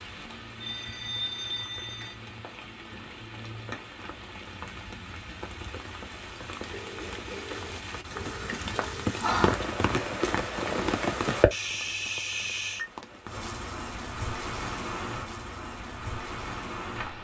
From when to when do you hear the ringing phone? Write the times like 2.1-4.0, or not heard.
0.6-2.1, 6.7-9.1, 11.5-12.9.